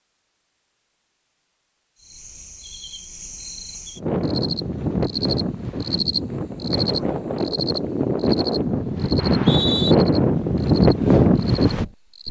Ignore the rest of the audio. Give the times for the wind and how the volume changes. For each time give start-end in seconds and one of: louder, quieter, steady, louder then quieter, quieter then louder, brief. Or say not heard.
4.0-12.2 louder.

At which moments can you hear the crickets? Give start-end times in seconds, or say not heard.
1.9-12.2.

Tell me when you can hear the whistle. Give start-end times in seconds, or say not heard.
9.2-9.9.